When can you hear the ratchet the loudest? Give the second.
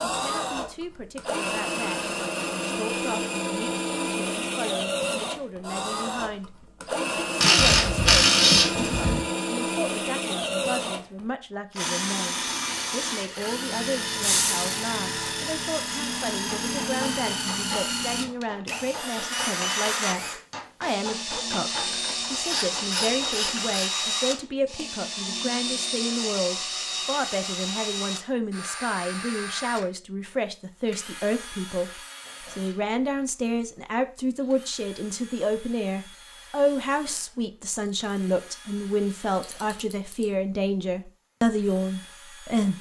8 s.